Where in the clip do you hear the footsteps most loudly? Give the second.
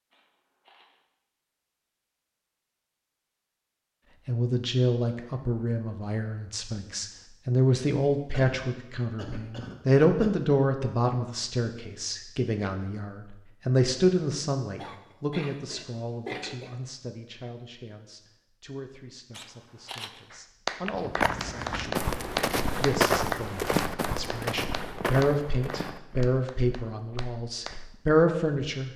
23 s.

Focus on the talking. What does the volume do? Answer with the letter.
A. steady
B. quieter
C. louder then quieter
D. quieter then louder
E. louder
D.